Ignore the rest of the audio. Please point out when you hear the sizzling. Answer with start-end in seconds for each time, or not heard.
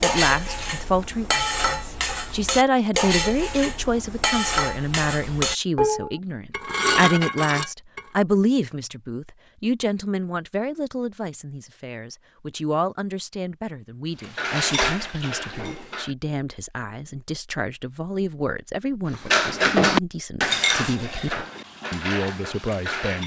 not heard.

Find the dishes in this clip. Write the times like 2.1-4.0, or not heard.
0.0-8.0, 14.2-16.1, 19.1-23.2.